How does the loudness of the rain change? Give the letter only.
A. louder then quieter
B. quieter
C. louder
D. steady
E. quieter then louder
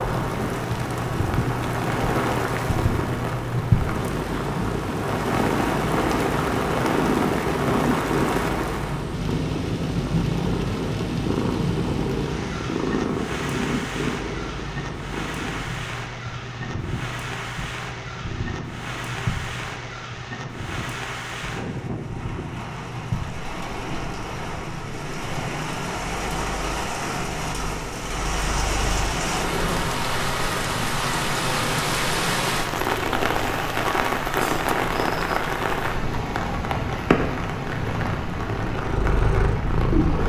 E.